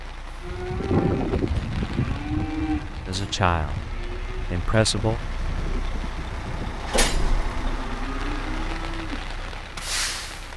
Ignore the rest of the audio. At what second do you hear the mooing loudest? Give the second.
1 s.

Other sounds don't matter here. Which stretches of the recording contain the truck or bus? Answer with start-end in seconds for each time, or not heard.
0.0-10.5.